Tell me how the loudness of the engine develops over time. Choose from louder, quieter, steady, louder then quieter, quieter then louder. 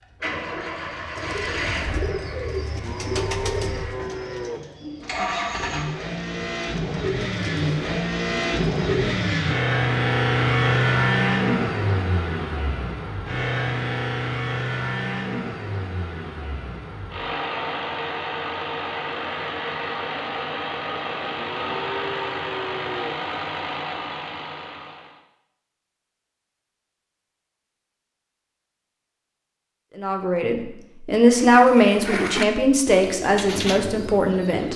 louder then quieter.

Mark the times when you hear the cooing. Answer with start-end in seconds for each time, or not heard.
1.1-9.4, 31.4-34.7.